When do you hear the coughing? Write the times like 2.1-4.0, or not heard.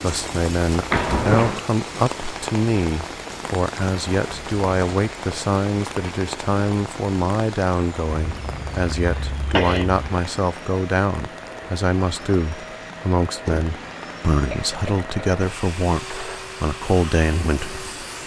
0.9-1.6, 8.1-10.1, 14.5-15.1.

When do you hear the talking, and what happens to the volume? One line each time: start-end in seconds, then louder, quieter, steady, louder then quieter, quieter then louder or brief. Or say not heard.
0.0-17.9 steady.